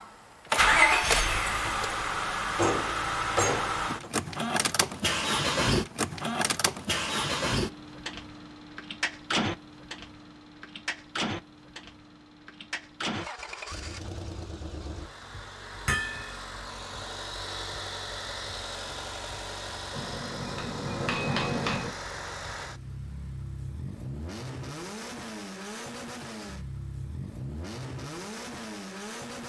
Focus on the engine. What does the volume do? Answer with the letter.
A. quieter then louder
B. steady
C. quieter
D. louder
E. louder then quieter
C.